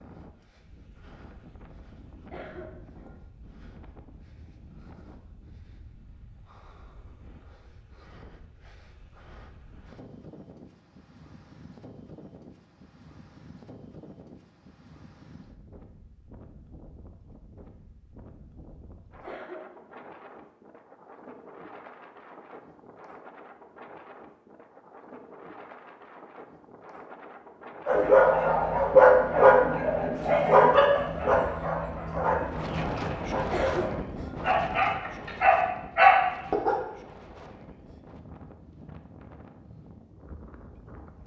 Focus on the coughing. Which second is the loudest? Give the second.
34 s.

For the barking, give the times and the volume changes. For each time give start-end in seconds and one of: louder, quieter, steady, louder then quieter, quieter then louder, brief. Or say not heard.
27.9-36.8 quieter then louder.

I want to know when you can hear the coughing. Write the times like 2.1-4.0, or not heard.
2.3-3.2, 19.2-20.1, 33.5-34.4.